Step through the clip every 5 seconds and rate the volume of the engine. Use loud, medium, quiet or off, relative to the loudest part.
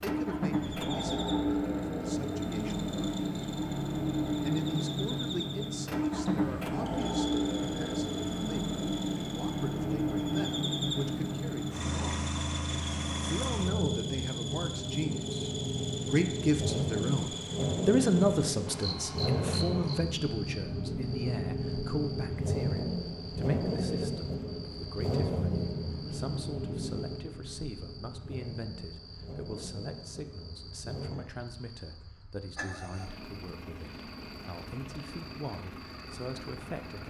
loud, loud, loud, loud, loud, medium, quiet, quiet.